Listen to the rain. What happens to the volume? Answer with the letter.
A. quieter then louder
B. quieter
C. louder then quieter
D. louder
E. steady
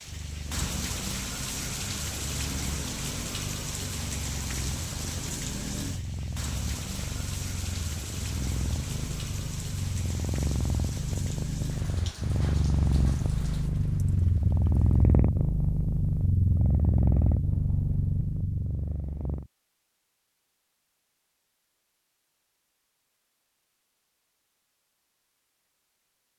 B.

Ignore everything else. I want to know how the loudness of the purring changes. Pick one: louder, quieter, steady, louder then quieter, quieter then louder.
louder.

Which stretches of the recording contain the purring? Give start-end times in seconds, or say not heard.
0.0-19.4.